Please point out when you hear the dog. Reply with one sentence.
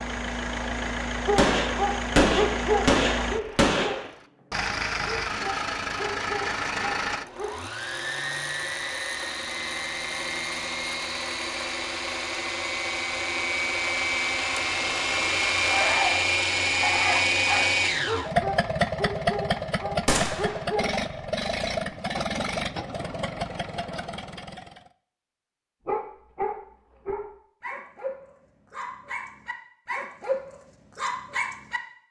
You can hear the dog from 1.2 to 4.0 s, from 5.0 to 7.5 s, from 15.2 to 20.9 s and from 25.9 to 31.8 s.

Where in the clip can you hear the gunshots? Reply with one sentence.
The gunshots can be heard from 1.4 to 4.1 s and from 20.1 to 20.6 s.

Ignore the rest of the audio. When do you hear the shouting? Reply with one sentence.
The shouting can't be heard in this clip.